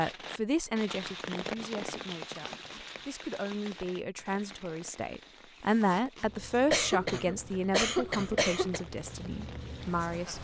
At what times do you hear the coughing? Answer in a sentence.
You can hear the coughing from 6.7 to 8.8 s.